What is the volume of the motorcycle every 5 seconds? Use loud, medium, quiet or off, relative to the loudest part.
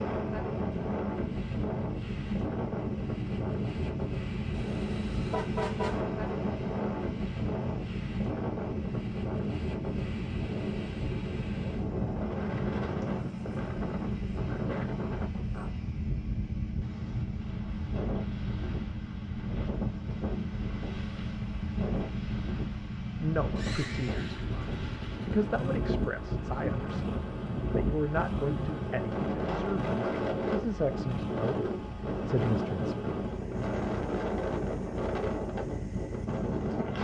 loud, loud, loud, loud, loud, loud, loud, medium.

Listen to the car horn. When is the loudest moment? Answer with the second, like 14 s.
6 s.